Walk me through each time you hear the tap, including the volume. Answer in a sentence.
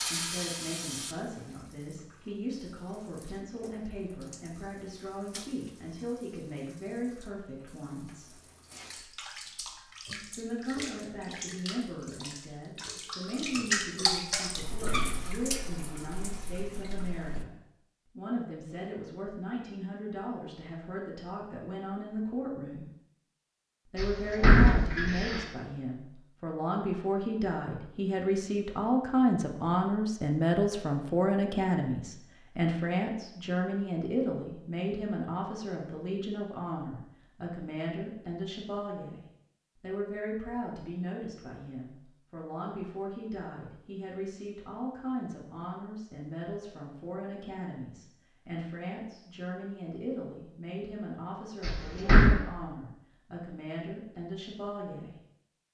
The tap can be heard from 0.0 to 17.4 s, getting quieter then louder.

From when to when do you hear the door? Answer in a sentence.
The door can be heard from 23.9 to 25.4 s and from 51.6 to 52.4 s.